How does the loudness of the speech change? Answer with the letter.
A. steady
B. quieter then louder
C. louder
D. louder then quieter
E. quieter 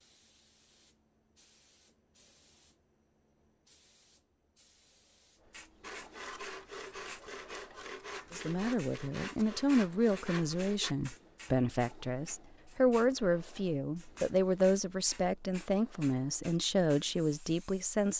A.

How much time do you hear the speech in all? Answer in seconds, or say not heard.
10 s.